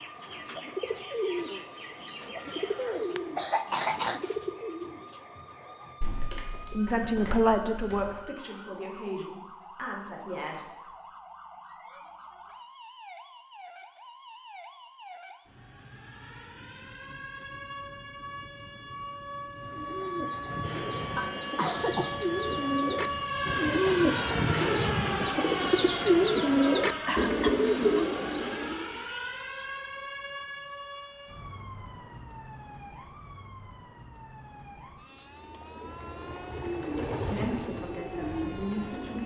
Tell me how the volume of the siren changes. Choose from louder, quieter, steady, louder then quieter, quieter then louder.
louder then quieter.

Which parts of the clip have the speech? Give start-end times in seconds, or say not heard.
6.7-10.7, 37.2-39.2.